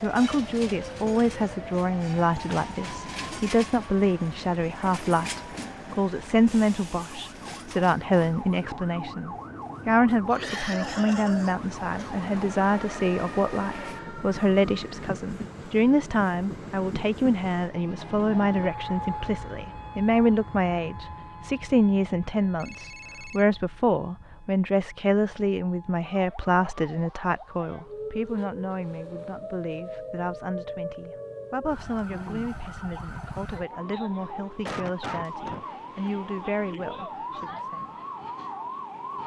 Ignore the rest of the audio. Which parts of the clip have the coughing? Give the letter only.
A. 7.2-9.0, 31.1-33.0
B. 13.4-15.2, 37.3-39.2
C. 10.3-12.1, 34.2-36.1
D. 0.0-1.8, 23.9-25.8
C.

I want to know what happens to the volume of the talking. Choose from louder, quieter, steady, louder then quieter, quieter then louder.
quieter.